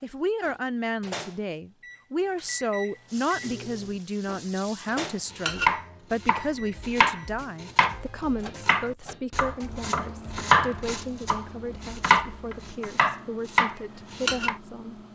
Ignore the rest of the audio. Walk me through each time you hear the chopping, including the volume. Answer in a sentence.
The chopping can be heard from 4.8 to 14.6 s, at a steady volume.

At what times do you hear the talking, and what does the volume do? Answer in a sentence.
The talking can be heard from 0.0 to 15.0 s, getting quieter.